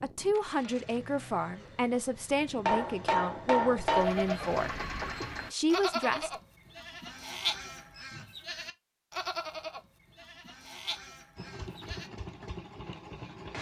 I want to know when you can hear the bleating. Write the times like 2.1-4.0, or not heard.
3.9-12.1.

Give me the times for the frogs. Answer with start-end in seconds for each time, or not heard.
not heard.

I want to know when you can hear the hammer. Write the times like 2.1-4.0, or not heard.
2.6-4.2.